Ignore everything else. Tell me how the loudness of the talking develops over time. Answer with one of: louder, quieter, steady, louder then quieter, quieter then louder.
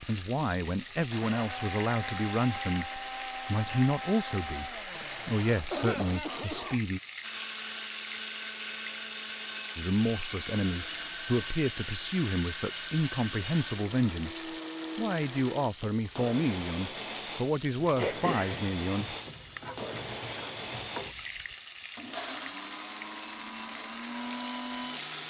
steady.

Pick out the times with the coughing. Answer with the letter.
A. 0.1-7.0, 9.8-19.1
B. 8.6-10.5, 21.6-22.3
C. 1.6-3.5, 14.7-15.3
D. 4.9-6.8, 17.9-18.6
D.